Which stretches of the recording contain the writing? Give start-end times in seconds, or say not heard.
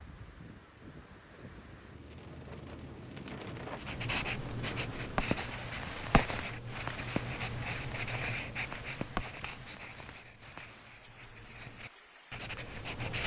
3.8-13.2.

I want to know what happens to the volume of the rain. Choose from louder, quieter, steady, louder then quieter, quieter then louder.
louder then quieter.